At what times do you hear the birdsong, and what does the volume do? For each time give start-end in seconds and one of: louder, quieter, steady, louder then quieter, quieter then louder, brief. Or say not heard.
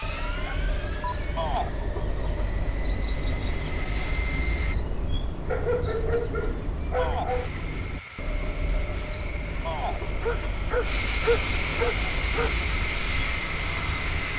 0.0-14.3 steady.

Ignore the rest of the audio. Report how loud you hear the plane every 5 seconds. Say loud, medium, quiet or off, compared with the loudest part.
medium, medium, loud.